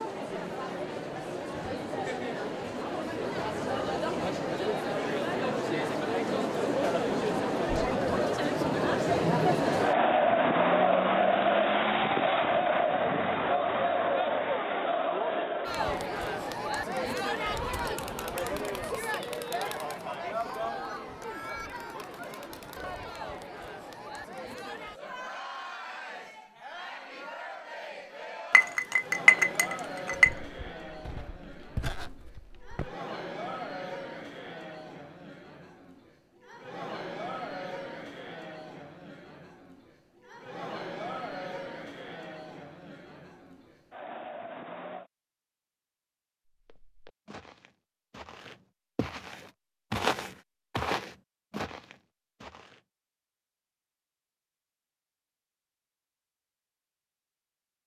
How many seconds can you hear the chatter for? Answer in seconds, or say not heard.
45 s.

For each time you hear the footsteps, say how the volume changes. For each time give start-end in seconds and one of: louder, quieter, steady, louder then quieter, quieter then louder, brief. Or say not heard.
30.1-33.0 brief
46.6-52.8 louder then quieter.